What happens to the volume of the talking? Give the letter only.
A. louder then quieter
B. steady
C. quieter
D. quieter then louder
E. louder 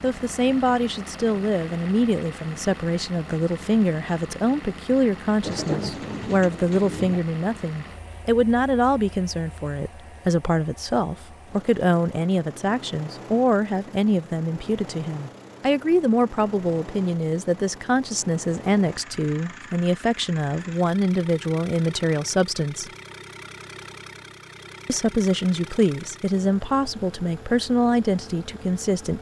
B.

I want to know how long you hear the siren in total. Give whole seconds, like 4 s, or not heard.
not heard.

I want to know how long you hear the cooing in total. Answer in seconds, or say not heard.
2 s.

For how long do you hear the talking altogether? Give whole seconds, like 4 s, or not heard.
27 s.